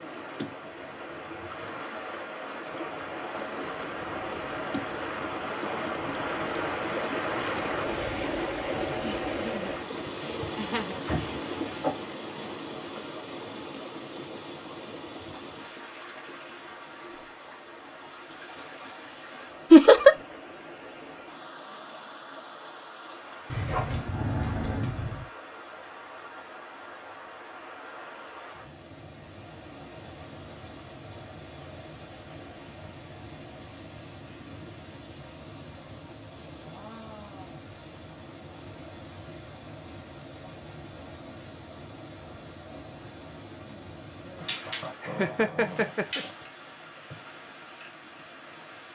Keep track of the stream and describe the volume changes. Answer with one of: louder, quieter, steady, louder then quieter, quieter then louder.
quieter.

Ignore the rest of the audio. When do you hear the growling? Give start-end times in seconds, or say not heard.
11.1-11.9, 23.4-25.2, 44.4-46.3.